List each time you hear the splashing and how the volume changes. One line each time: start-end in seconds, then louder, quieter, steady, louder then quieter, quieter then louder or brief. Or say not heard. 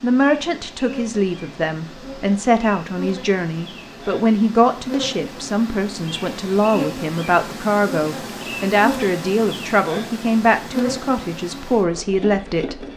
not heard.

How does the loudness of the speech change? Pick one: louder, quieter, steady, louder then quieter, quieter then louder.
steady.